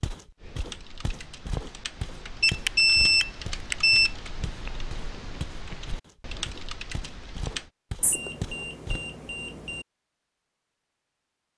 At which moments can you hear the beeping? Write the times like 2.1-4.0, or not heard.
2.4-4.1, 8.0-9.8.